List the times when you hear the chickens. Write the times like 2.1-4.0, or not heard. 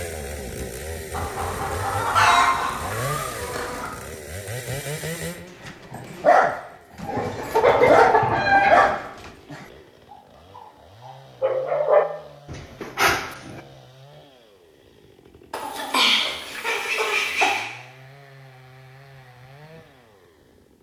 1.1-3.9, 7.2-8.9, 15.5-17.6.